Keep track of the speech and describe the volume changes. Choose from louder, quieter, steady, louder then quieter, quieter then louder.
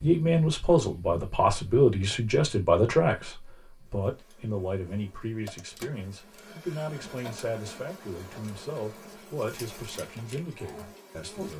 quieter.